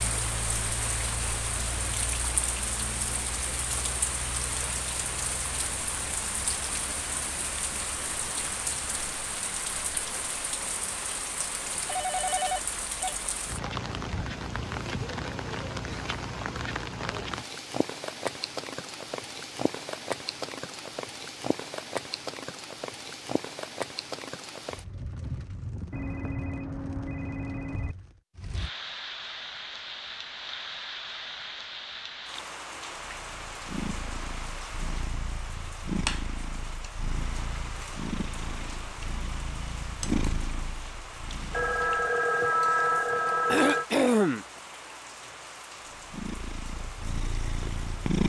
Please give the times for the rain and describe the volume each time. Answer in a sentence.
The rain can be heard from 0.0 to 48.2 s, getting quieter.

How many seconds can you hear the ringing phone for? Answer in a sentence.
You can hear the ringing phone for 6 seconds altogether.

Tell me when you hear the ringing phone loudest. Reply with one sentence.
The volume of the ringing phone peaks at 43 seconds.